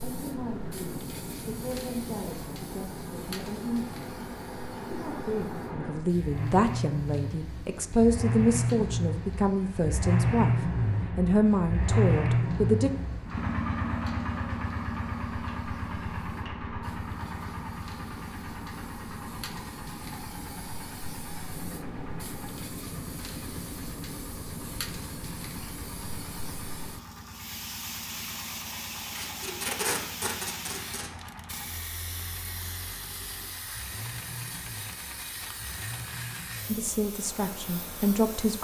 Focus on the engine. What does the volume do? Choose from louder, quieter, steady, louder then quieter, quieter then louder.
louder then quieter.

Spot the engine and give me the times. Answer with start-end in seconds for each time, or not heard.
0.0-38.6.